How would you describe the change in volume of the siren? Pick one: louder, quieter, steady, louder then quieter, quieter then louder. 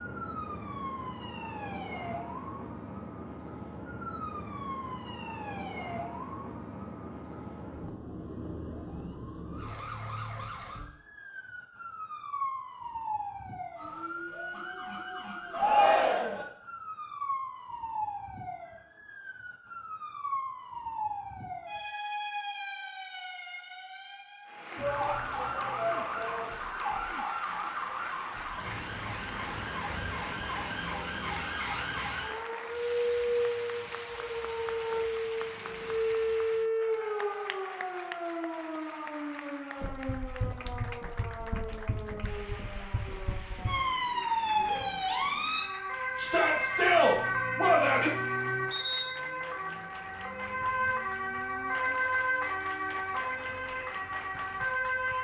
louder.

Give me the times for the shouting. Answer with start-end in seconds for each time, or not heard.
15.5-16.4, 24.8-26.5, 46.1-48.1.